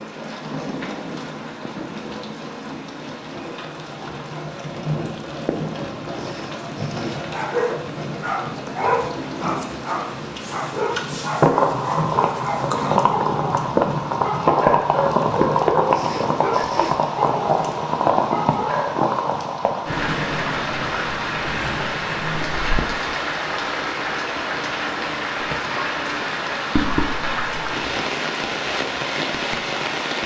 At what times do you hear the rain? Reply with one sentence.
You can hear the rain from 0.0 to 30.2 s.